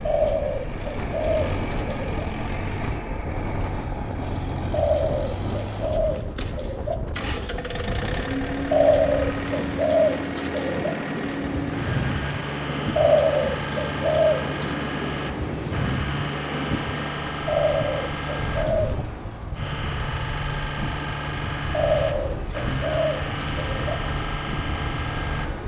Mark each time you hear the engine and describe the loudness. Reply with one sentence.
You can hear the engine from 0.0 to 25.6 s, at a steady volume.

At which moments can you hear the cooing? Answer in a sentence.
You can hear the cooing from 0.1 to 2.2 s, from 4.7 to 7.0 s, from 8.7 to 10.9 s, from 12.9 to 14.6 s, from 17.4 to 18.9 s and from 21.7 to 24.0 s.